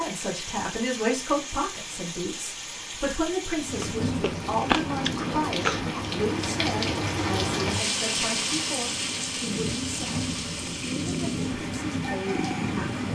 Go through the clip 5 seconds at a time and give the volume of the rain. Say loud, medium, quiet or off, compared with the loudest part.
medium, loud, medium.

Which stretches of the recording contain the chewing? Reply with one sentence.
The chewing can be heard from 3.8 to 6.0 s.